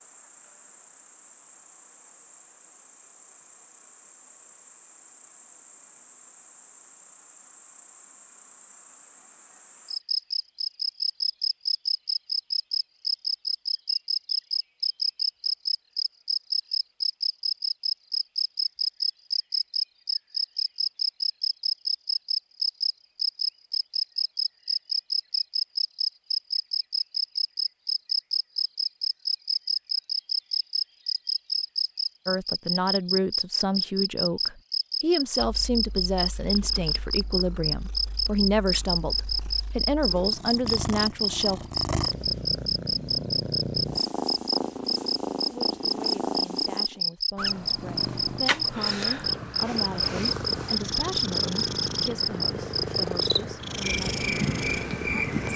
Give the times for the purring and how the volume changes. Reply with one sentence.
The purring can be heard from 35.4 to 55.5 s, getting louder.